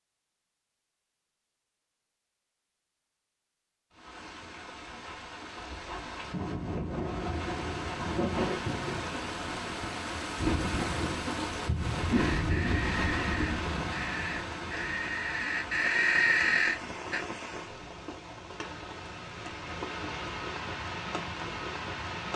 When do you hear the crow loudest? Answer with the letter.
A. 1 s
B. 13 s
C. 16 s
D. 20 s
C.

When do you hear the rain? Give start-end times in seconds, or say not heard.
4.0-22.3.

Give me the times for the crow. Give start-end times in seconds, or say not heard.
12.1-17.2.